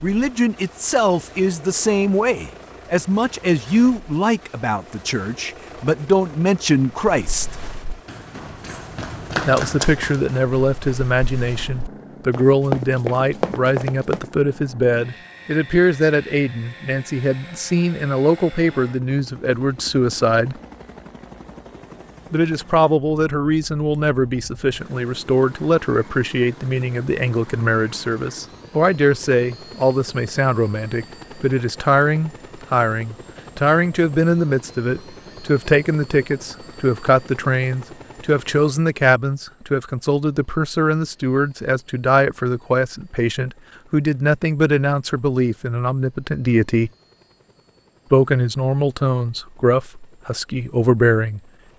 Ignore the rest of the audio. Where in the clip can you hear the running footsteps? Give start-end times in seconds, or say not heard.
7.2-14.2.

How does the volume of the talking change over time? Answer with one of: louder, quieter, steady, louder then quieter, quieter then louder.
steady.